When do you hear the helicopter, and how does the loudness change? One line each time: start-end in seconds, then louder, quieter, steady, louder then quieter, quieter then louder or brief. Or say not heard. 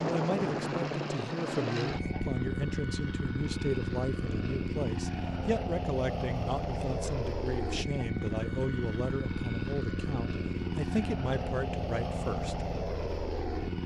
0.0-13.8 steady.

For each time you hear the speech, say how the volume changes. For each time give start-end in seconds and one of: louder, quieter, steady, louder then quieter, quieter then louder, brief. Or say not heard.
0.0-12.7 steady.